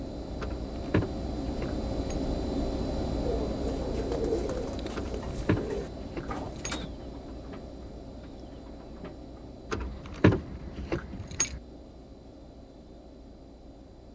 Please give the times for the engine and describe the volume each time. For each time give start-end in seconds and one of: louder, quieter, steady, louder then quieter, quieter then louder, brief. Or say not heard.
0.0-14.1 quieter.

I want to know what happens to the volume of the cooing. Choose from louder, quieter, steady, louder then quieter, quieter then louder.
quieter.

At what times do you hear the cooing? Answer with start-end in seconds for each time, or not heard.
3.2-9.5.